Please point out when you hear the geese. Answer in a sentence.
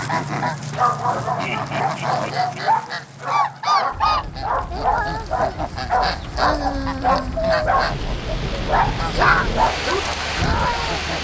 The geese can be heard from 0.0 to 11.1 s.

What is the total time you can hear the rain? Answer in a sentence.
You can hear the rain for 7 seconds altogether.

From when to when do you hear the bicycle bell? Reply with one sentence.
You can't hear the bicycle bell here.